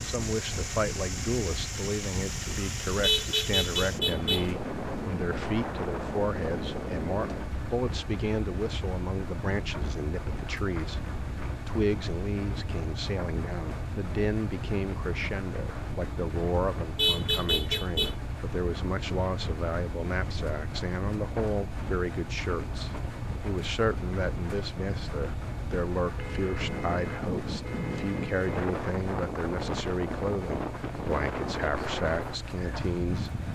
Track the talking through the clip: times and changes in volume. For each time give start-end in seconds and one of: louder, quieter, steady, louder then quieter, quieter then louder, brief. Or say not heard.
0.0-33.5 steady.